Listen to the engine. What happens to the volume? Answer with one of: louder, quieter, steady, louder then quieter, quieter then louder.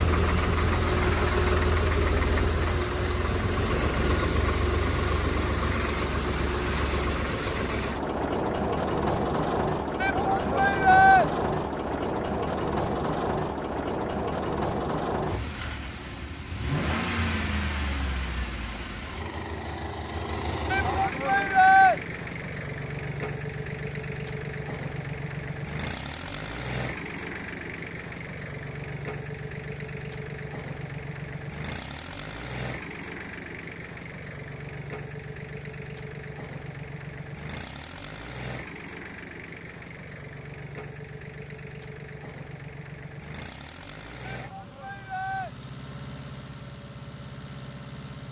quieter.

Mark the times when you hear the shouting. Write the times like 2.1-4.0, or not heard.
10.0-11.2, 20.7-21.9, 44.2-45.5.